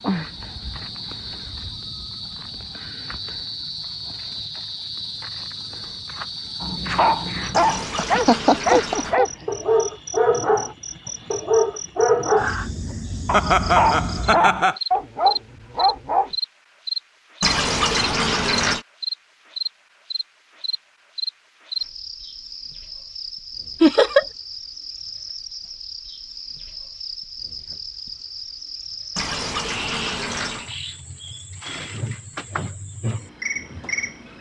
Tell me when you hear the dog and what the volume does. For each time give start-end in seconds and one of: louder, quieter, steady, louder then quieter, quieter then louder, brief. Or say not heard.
6.6-16.3 steady.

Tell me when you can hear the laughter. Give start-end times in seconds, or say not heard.
8.0-9.3, 13.3-14.8, 23.8-24.2.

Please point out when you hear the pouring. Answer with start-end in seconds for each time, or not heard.
7.5-9.2, 17.4-18.9, 29.1-30.7.